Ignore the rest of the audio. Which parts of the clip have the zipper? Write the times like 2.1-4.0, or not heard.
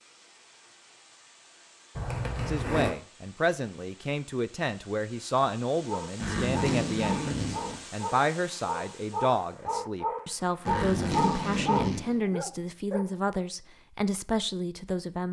1.9-2.9, 6.2-7.8, 10.7-12.2.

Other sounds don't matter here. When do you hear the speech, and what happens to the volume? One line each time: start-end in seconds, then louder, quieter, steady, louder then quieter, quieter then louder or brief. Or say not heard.
2.5-15.2 steady.